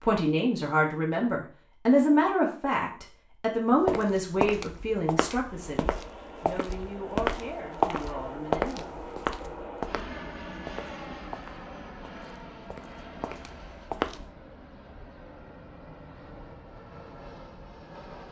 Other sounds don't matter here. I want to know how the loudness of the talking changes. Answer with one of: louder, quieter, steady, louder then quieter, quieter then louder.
quieter.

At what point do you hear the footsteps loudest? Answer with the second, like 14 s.
8 s.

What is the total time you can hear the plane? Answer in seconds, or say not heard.
13 s.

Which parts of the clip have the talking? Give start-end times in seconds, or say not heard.
0.0-9.7.